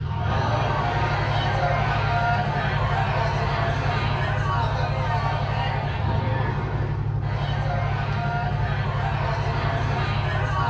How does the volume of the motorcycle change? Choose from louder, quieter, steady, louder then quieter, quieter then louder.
steady.